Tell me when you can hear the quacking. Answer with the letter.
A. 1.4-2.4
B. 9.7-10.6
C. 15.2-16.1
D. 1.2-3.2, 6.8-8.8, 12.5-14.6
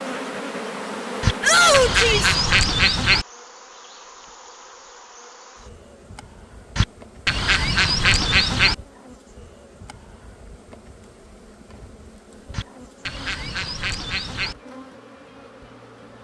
D.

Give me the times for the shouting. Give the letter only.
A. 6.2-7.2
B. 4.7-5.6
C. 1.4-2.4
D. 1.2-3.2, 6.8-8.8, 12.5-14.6
C.